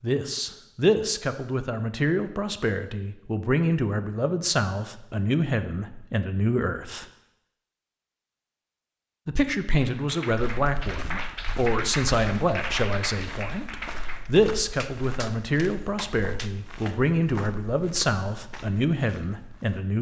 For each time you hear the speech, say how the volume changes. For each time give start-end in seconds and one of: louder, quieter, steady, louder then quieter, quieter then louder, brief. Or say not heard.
0.0-7.0 steady
9.2-19.9 steady.